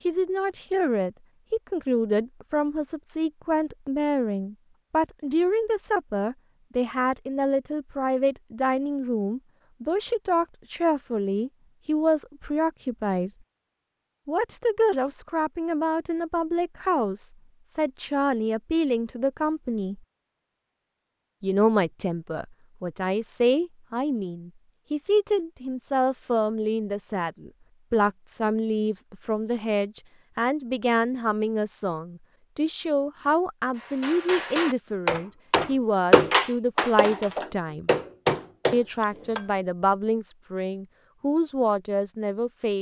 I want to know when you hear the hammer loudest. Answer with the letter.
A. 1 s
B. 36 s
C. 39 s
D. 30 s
B.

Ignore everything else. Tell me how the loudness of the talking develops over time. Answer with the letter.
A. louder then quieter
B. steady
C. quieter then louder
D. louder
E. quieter
B.